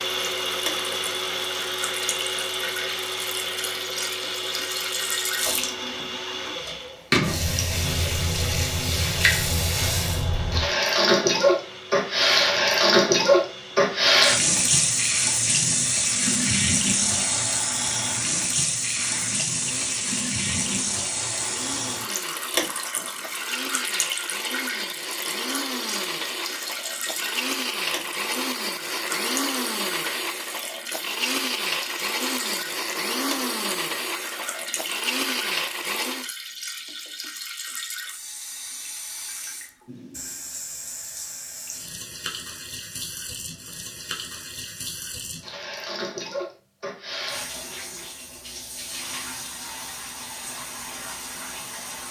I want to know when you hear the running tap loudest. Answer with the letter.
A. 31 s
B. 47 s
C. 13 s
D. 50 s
C.